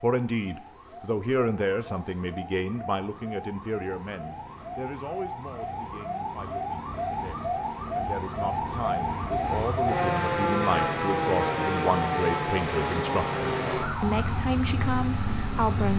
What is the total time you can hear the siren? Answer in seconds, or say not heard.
16 s.